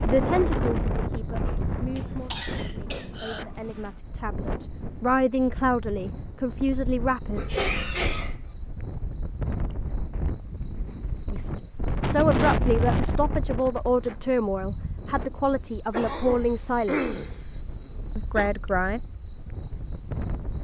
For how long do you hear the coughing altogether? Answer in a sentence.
The coughing can be heard for 5 seconds in total.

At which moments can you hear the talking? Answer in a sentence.
You can hear the talking from 0.0 to 7.5 s, from 11.3 to 17.1 s and from 18.1 to 19.0 s.